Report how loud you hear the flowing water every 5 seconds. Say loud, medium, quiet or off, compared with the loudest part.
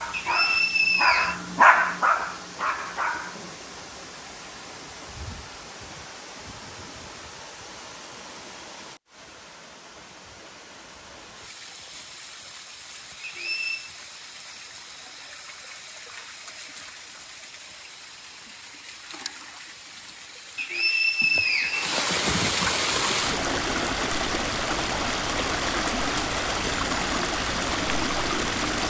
quiet, quiet, quiet, quiet, loud, loud.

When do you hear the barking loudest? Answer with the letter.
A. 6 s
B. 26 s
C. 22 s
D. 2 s
D.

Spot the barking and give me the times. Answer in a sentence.
The barking can be heard from 0.0 to 3.5 s.